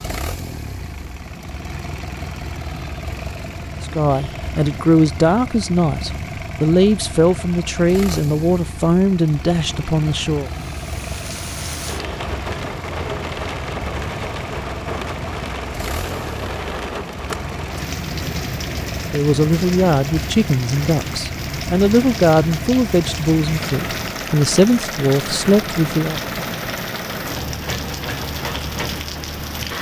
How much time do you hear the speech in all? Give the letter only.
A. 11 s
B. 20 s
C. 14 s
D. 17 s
C.